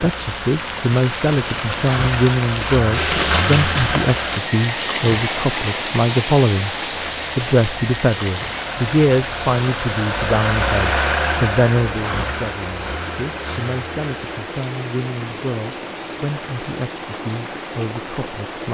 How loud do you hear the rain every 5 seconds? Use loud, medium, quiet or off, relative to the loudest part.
loud, loud, medium, medium.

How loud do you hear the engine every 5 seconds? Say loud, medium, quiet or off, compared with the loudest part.
loud, medium, loud, off.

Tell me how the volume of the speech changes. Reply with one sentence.
The loudness of the speech goes down.